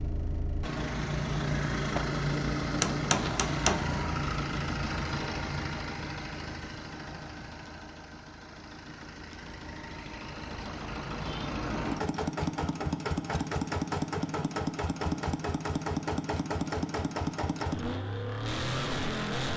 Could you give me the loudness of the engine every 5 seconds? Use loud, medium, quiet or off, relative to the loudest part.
loud, medium, loud, loud.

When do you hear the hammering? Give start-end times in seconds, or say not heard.
2.7-3.9.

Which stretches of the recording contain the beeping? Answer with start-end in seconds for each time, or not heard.
not heard.